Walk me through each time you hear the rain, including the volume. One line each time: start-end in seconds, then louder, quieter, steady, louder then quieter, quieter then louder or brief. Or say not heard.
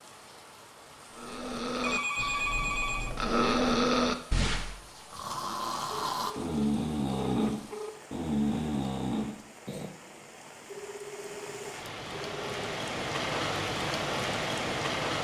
0.0-15.1 louder.